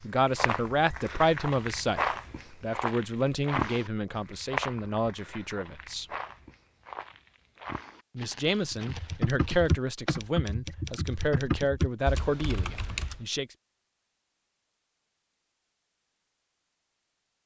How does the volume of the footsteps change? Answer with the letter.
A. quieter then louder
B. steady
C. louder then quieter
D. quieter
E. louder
D.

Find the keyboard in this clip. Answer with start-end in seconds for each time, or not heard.
8.7-13.2.